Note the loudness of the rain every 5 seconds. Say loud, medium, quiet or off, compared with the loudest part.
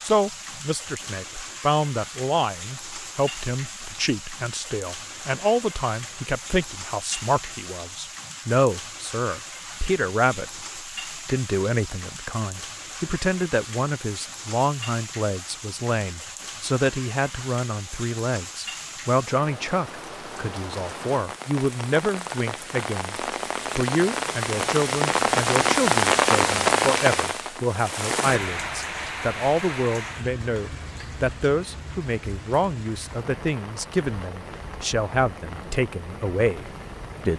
quiet, quiet, quiet, quiet, medium, loud, quiet, quiet.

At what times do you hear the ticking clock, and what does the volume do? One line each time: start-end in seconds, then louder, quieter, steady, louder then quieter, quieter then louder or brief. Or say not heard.
not heard.